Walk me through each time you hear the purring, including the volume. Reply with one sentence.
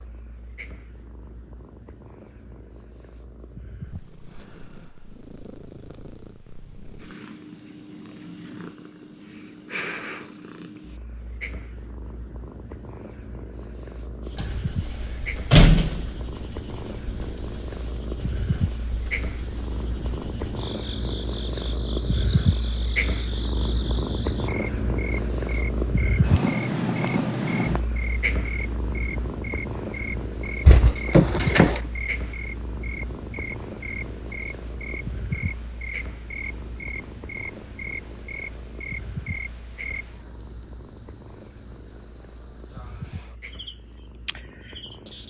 You can hear the purring from 0.0 to 45.2 s, getting louder then quieter.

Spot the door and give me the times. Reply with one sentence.
The door can be heard from 14.8 to 16.1 s and from 30.6 to 31.8 s.